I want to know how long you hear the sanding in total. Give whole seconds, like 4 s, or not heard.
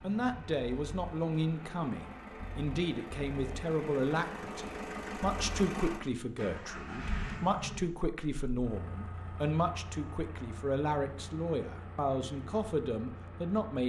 not heard.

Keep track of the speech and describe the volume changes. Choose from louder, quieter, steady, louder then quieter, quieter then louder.
steady.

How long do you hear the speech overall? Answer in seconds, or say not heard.
14 s.